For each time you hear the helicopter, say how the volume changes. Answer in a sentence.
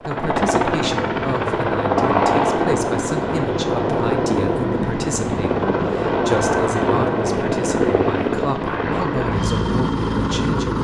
The helicopter can be heard from 0.0 to 10.8 s, at a steady volume.